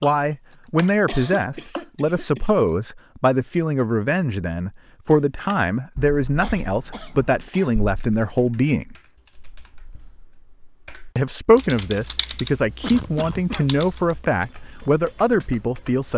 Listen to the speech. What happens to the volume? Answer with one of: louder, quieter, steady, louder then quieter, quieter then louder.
steady.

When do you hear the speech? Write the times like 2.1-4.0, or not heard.
0.0-8.9, 11.2-16.1.